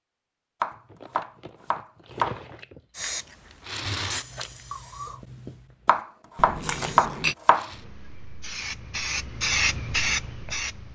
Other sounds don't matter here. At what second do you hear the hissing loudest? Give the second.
10 s.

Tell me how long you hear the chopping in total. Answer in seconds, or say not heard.
4 s.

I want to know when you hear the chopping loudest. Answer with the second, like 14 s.
7 s.